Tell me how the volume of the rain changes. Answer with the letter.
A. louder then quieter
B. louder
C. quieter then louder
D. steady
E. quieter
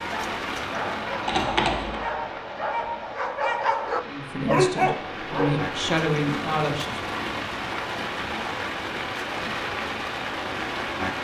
C.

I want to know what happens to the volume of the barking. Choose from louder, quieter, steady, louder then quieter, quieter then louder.
louder.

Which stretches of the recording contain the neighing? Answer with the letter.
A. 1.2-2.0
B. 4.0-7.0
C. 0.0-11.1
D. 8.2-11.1
A.